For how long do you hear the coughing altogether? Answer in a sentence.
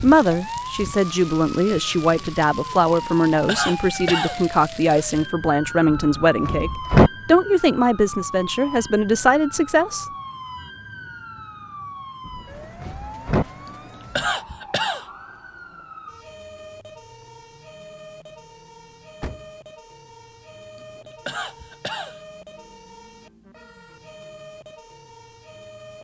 The coughing can be heard for 4 seconds in total.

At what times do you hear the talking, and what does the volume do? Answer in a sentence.
The talking can be heard from 0.0 to 10.1 s, at a steady volume.